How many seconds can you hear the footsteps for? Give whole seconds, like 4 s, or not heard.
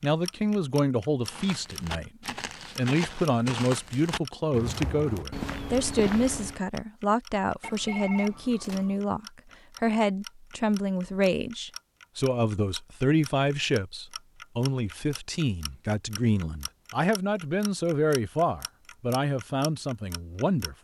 5 s.